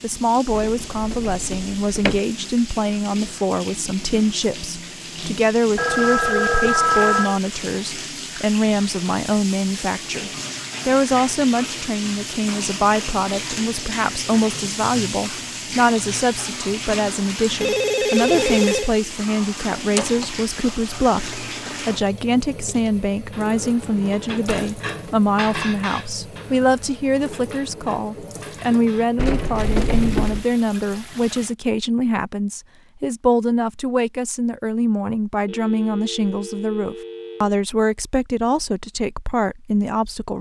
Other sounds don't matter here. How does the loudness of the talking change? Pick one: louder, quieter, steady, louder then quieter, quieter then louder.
steady.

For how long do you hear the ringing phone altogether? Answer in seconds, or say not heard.
5 s.